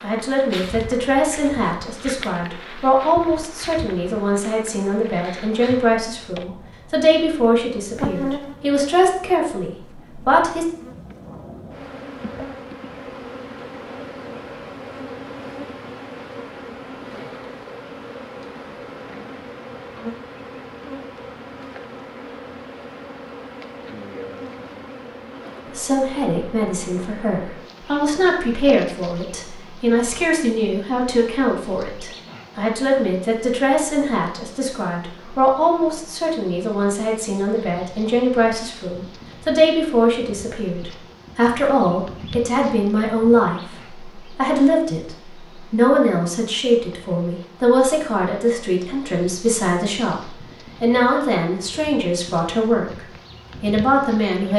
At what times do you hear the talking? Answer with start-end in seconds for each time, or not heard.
0.0-10.7, 25.8-53.0, 53.6-54.5.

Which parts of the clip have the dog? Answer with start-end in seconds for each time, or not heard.
not heard.